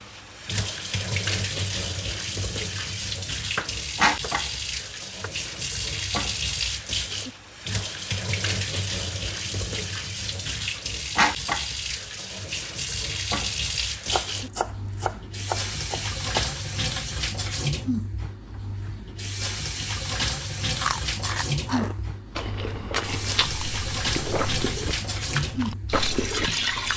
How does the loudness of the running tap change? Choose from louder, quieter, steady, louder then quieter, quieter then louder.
steady.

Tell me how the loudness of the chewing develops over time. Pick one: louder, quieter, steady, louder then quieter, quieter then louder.
steady.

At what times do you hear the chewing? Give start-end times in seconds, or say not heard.
20.8-26.9.